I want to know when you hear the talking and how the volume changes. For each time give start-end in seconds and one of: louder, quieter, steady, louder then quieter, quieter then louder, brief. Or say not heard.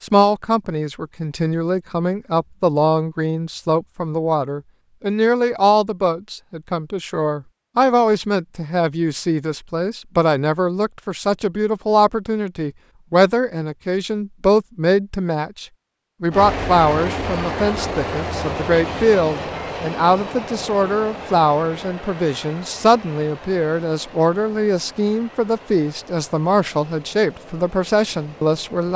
0.0-28.9 steady.